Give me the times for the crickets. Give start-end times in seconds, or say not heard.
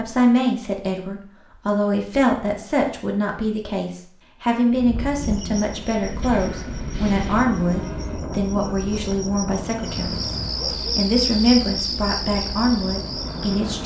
5.2-13.8.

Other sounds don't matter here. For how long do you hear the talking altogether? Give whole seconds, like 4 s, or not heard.
14 s.